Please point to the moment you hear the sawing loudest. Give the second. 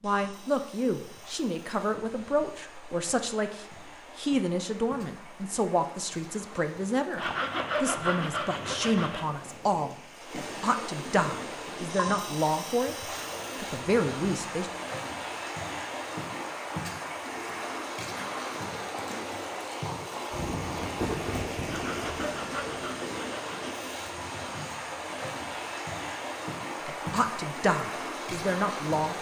8 s.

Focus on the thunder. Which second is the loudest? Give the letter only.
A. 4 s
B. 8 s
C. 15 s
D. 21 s
D.